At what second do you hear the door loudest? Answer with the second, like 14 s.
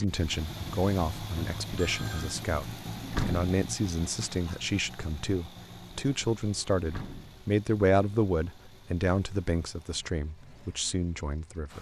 3 s.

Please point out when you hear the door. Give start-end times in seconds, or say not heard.
3.0-3.5, 6.8-7.3.